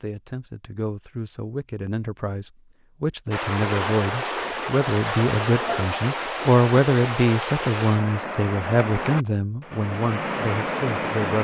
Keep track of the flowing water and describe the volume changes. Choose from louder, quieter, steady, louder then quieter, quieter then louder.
steady.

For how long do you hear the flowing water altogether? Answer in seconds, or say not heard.
8 s.